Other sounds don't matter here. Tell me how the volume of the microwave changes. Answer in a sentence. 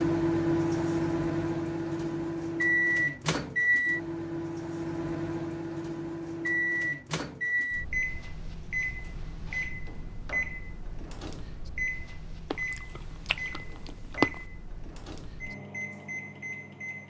The volume of the microwave goes down.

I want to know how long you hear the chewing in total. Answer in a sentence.
You can hear the chewing for 2 seconds altogether.